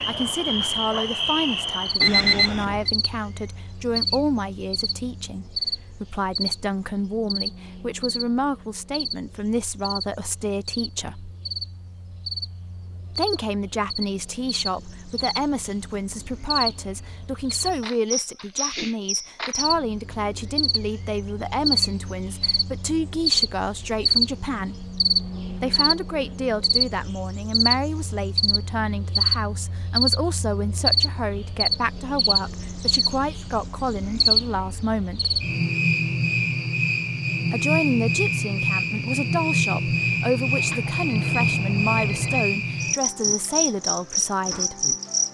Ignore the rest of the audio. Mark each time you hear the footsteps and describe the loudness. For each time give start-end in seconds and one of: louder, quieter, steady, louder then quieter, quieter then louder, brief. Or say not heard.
not heard.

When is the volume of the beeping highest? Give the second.
2 s.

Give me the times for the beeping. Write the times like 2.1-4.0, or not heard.
2.0-2.9, 40.5-42.5.